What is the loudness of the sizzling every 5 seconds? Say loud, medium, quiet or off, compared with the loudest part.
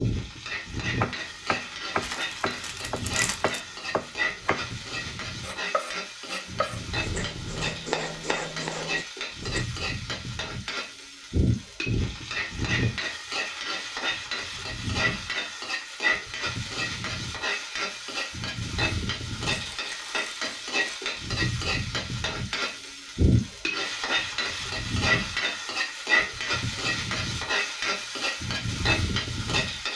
medium, medium, loud, loud, loud, loud.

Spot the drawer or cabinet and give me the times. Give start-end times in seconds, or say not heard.
not heard.